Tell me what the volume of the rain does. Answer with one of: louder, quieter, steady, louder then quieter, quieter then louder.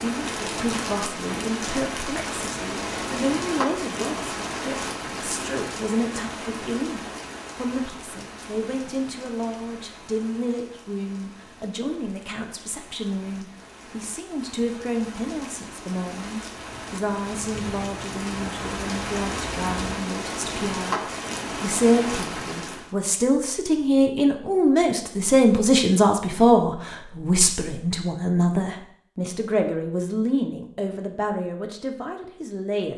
quieter then louder.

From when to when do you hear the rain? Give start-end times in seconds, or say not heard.
0.0-22.9.